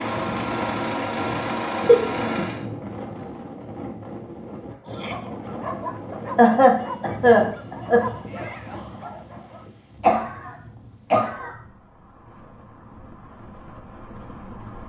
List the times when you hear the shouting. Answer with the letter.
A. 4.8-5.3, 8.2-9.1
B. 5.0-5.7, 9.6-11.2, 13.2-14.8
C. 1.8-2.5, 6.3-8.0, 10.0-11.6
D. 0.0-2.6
A.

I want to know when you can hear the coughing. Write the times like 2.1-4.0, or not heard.
1.8-2.5, 6.3-8.0, 10.0-11.6.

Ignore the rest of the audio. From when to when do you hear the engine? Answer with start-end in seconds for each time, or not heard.
0.0-2.6.